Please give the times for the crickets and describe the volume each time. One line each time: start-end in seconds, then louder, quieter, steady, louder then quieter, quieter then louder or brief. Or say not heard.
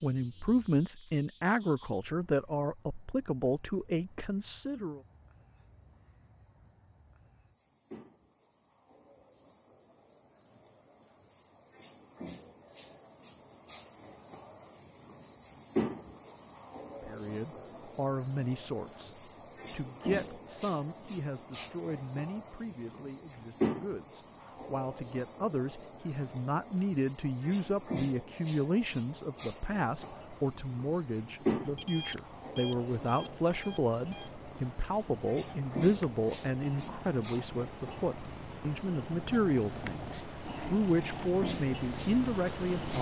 0.0-42.9 louder.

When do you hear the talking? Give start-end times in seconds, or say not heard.
0.0-5.0, 17.1-42.9.